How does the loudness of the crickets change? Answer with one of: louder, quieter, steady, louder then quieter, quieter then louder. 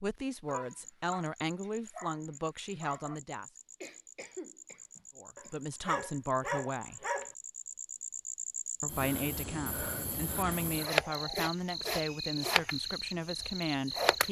louder.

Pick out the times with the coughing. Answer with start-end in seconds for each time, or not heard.
3.8-5.5.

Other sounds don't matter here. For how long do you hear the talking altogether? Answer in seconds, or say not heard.
11 s.